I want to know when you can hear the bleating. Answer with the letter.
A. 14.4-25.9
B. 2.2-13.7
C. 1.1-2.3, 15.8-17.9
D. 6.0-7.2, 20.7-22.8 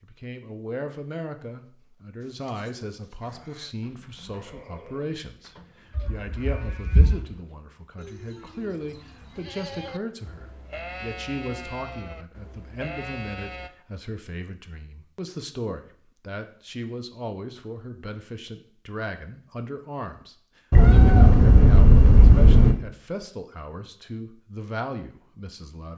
B.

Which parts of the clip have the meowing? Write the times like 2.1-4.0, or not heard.
6.0-7.2, 20.7-22.8.